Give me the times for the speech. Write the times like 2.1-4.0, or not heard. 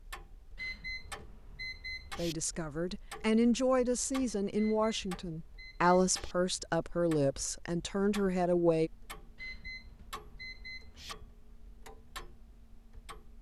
2.1-8.9.